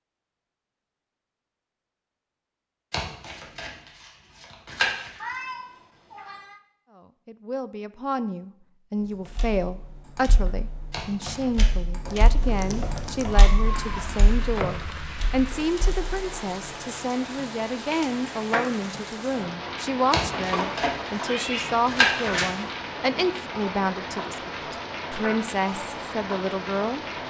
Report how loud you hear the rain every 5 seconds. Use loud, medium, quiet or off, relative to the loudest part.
off, off, loud, loud, loud, loud.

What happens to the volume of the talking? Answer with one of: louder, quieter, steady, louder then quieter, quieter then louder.
steady.